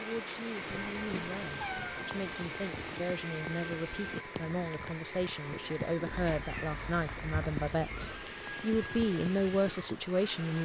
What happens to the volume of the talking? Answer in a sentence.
The loudness of the talking goes up.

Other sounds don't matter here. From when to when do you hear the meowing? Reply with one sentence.
The meowing can be heard from 0.7 to 2.0 s and from 6.1 to 8.2 s.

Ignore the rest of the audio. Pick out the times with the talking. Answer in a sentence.
The talking can be heard from 0.0 to 10.6 s.